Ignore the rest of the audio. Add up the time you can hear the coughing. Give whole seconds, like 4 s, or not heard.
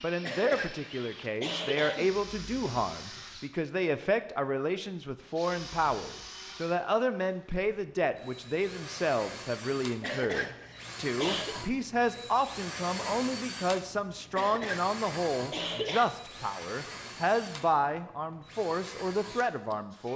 5 s.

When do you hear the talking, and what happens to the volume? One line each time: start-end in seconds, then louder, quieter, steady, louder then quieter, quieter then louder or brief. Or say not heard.
0.0-20.1 steady.